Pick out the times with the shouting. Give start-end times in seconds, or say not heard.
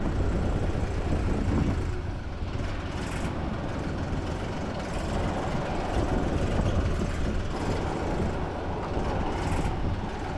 not heard.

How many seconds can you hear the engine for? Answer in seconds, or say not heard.
10 s.